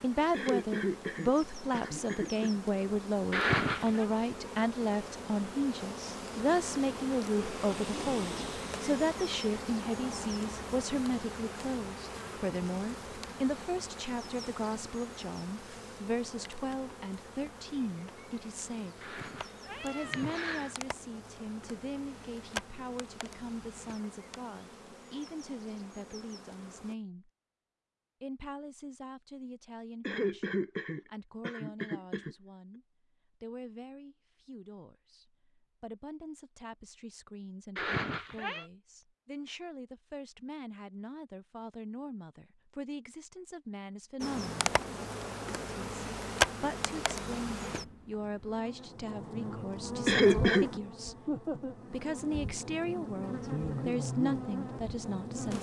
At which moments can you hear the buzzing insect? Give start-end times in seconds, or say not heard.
0.0-26.9, 44.2-55.5.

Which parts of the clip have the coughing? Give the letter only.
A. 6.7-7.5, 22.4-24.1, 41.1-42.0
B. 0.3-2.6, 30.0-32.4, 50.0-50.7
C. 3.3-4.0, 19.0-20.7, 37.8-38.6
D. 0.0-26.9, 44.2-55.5
B.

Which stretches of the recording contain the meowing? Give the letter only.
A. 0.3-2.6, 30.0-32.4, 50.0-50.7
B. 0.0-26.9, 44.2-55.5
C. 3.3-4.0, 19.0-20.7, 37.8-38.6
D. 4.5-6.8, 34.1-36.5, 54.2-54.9
C.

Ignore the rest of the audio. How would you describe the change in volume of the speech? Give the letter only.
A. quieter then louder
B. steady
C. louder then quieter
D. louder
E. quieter
A.